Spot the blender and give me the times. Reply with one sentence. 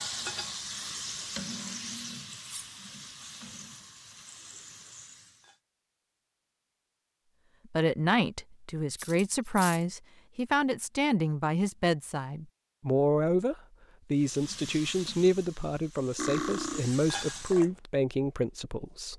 You can't hear the blender here.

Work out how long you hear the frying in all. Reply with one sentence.
You can hear the frying for 9 seconds altogether.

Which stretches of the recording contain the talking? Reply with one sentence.
The talking can be heard from 7.7 to 19.1 s.